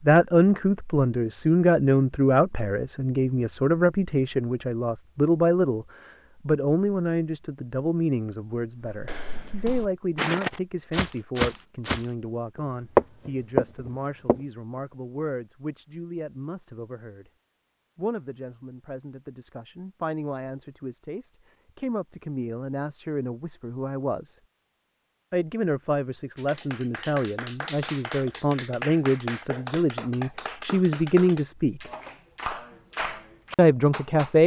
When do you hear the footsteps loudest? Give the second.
13 s.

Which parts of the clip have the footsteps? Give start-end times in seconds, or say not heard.
8.9-14.4.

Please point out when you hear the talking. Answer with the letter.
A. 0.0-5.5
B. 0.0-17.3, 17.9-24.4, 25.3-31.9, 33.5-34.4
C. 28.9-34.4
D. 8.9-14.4
B.